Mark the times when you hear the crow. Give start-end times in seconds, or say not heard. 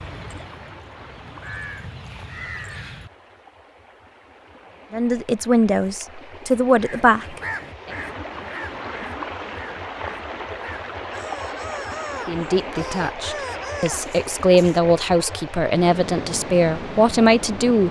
0.0-3.1, 6.8-15.4.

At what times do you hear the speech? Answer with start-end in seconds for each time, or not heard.
4.9-7.9, 12.2-17.8.